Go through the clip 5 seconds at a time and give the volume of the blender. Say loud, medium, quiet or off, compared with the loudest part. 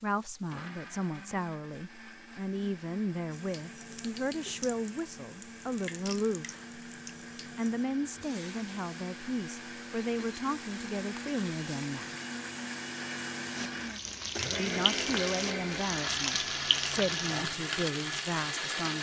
quiet, medium, loud, loud.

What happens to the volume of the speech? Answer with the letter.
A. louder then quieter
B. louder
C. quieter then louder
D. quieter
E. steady
E.